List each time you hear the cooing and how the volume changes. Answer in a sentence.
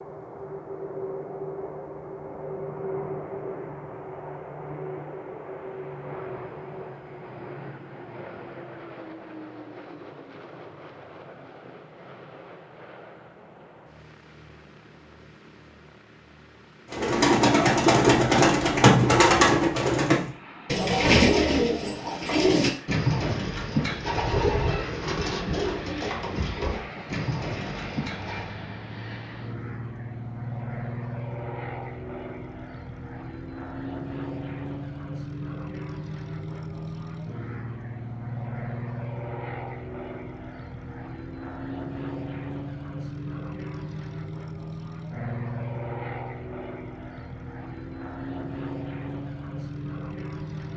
You can hear the cooing from 16.9 to 28.6 s, getting quieter.